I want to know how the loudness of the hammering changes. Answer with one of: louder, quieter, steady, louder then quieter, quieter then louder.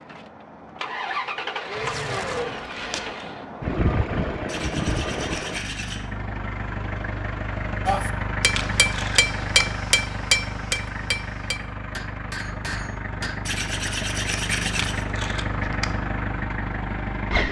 quieter.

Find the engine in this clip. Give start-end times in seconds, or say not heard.
0.0-17.4.